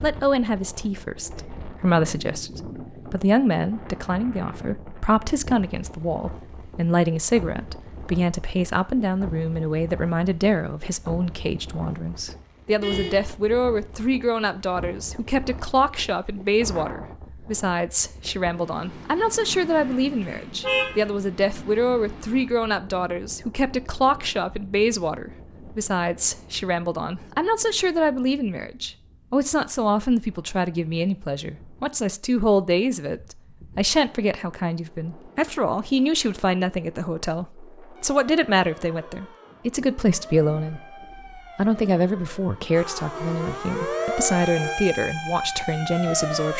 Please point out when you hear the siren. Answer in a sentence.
You can hear the siren from 38.0 to 46.5 s.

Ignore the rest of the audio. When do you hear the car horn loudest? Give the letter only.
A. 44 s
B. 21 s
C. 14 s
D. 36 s
B.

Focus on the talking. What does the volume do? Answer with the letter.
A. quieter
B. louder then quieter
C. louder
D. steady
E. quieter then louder
D.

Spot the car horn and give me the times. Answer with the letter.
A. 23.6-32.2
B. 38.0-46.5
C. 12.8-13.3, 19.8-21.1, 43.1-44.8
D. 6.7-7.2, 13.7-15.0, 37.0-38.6
C.